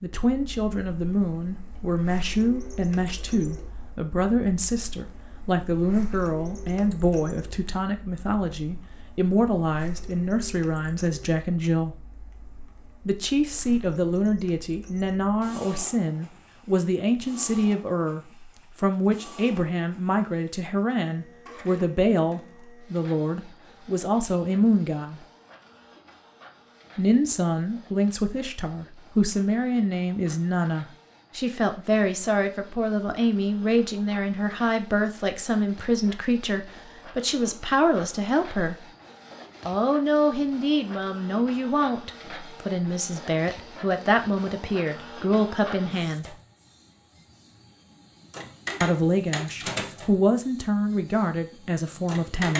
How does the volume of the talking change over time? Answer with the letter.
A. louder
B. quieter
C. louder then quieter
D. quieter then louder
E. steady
E.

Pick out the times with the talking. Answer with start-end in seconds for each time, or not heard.
0.0-11.9, 13.1-25.2, 26.9-38.8, 39.6-46.4, 48.8-52.5.